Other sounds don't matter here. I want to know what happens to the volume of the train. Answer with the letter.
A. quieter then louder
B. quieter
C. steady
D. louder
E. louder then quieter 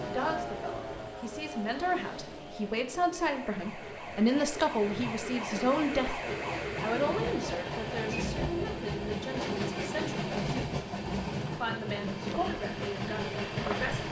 D.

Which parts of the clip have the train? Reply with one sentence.
You can hear the train from 0.0 to 14.0 s.